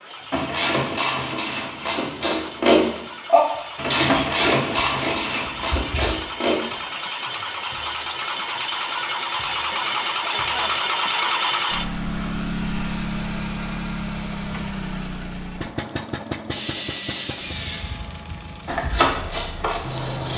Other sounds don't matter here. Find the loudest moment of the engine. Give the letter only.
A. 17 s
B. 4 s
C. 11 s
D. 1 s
C.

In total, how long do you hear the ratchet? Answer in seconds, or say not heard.
8 s.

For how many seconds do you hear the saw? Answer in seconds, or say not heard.
4 s.